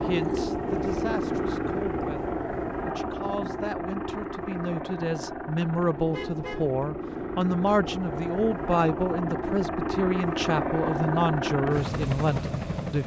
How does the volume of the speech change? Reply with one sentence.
The loudness of the speech goes up.